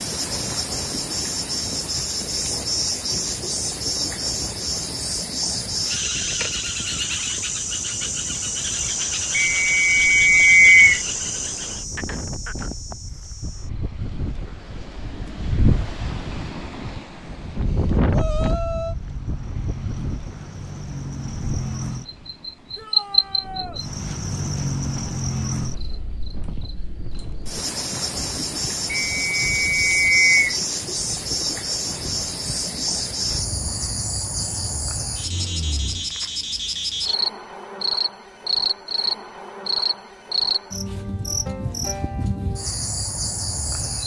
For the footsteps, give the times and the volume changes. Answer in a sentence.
You can't hear the footsteps here.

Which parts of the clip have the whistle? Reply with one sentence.
The whistle can be heard from 9.3 to 11.0 s and from 28.9 to 30.6 s.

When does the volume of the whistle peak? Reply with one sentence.
The volume of the whistle peaks at 11 seconds.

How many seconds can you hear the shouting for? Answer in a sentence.
You can hear the shouting for 2 seconds altogether.